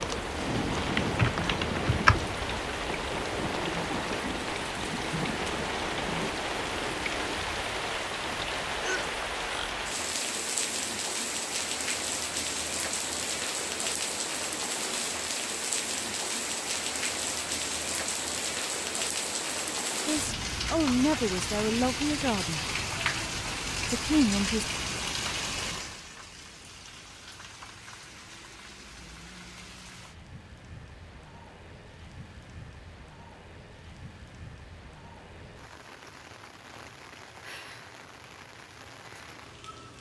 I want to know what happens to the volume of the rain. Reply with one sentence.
The loudness of the rain goes down.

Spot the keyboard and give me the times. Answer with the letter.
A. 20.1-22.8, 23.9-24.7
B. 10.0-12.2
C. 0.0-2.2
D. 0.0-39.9
C.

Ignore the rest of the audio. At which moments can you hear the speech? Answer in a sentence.
The speech can be heard from 20.1 to 22.8 s and from 23.9 to 24.7 s.